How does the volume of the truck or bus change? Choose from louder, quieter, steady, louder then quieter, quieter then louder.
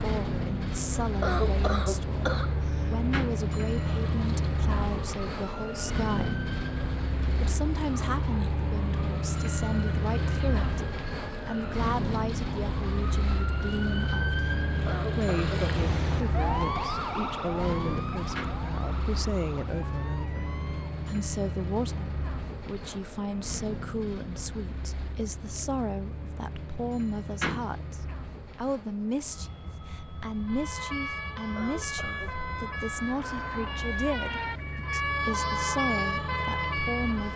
quieter.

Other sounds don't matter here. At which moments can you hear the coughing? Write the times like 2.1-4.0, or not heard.
1.2-3.1, 14.8-15.6, 31.6-32.4.